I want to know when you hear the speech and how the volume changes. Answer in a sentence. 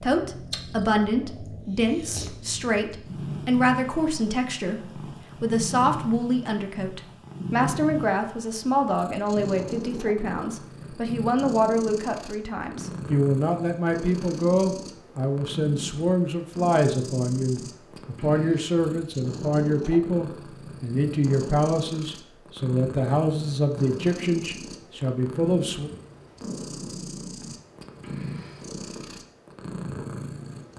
The speech can be heard from 0.0 to 25.9 s, at a steady volume.